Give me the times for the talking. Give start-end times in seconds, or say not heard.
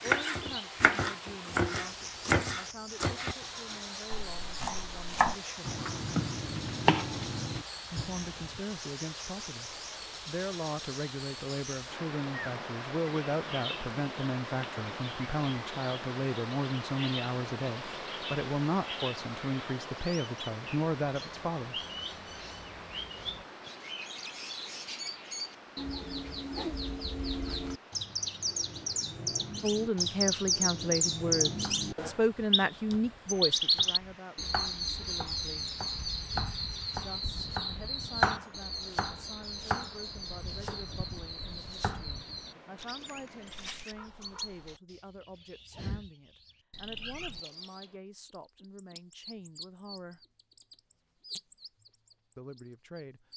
0.0-5.8, 7.9-21.8, 29.6-35.8, 37.0-50.2, 52.4-53.2.